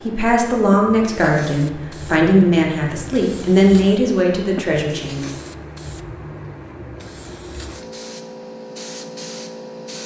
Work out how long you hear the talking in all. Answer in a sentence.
The talking can be heard for 5 seconds in total.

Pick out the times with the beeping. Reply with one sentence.
You can't hear the beeping here.